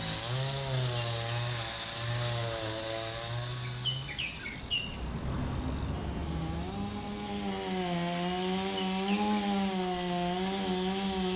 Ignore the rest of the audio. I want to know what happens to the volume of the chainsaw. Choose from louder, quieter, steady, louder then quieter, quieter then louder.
quieter then louder.